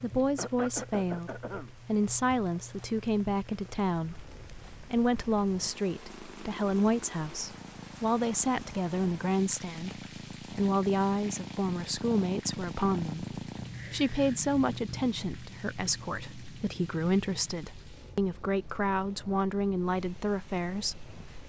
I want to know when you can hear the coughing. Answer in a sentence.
You can hear the coughing from 0.3 to 1.7 s.